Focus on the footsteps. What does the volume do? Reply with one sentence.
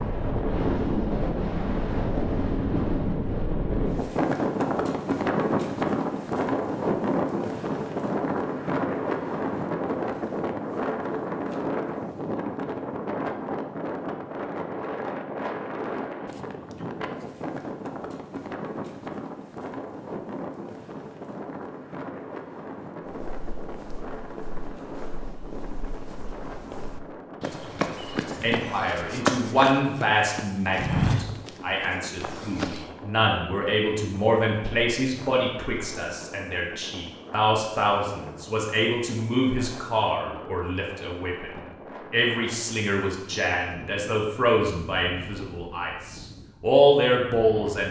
The volume of the footsteps goes up.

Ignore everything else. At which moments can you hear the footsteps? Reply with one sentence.
The footsteps can be heard from 23.1 to 32.9 s.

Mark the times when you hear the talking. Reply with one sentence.
You can hear the talking from 28.2 to 47.8 s.